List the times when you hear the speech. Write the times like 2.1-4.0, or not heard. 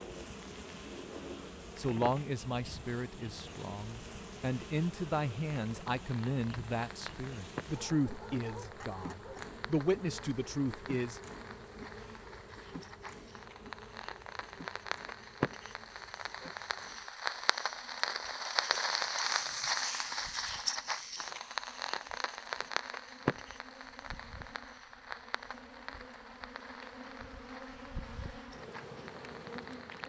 1.8-11.2.